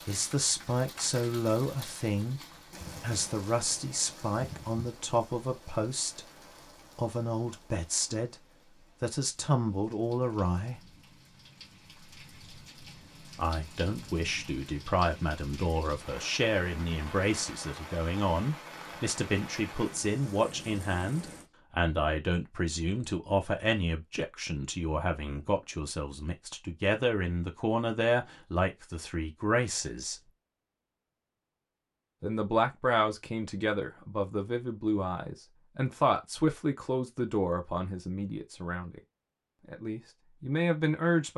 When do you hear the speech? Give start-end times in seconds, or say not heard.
0.1-2.4, 3.0-6.2, 7.0-10.9, 13.3-30.2, 32.2-39.0, 39.6-41.3.